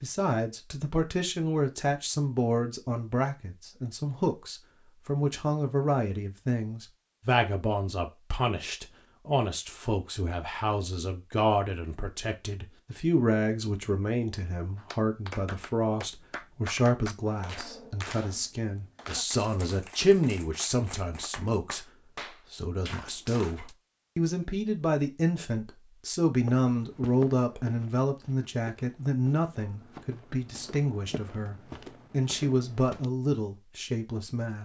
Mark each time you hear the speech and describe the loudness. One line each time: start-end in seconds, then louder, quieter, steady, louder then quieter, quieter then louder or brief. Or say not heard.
0.0-34.6 steady.